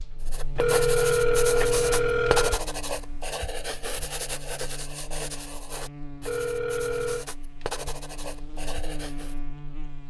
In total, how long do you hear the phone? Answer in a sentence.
The phone can be heard for 3 seconds in total.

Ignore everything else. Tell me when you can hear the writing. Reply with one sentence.
You can hear the writing from 0.2 to 9.3 s.